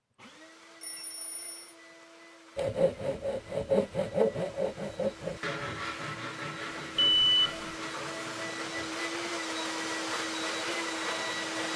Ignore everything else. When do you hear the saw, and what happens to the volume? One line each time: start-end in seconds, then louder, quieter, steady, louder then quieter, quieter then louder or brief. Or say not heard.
2.5-8.9 quieter.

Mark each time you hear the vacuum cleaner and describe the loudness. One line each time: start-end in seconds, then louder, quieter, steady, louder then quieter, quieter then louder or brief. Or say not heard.
0.1-11.7 louder.